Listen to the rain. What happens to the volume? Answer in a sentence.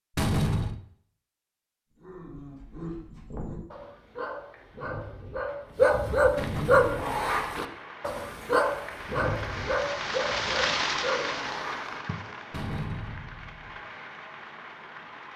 The loudness of the rain goes up, then down.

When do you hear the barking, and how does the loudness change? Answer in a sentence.
The barking can be heard from 2.0 to 11.9 s, getting louder then quieter.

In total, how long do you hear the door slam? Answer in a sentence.
The door slam can be heard for 3 seconds in total.